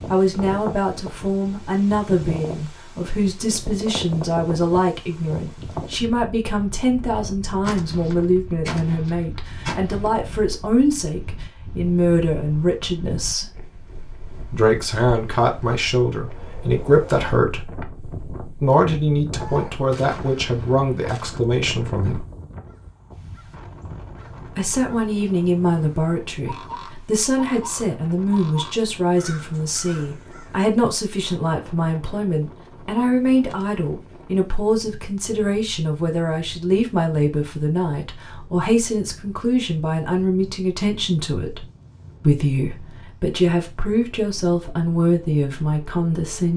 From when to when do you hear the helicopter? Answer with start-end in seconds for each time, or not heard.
not heard.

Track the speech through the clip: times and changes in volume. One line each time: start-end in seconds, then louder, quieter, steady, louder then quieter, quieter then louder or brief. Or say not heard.
0.1-13.4 steady
14.5-22.2 steady
24.6-46.5 steady.